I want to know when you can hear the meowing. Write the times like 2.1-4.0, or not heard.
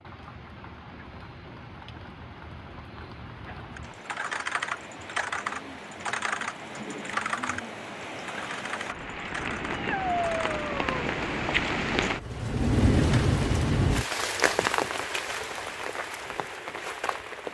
9.7-11.1.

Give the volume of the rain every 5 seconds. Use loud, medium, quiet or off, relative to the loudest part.
quiet, medium, loud, medium.